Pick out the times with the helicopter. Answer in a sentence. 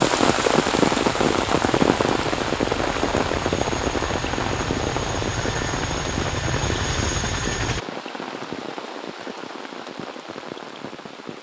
The helicopter can be heard from 0.0 to 7.8 s.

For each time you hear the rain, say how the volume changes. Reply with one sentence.
You can hear the rain from 0.0 to 11.3 s, getting quieter.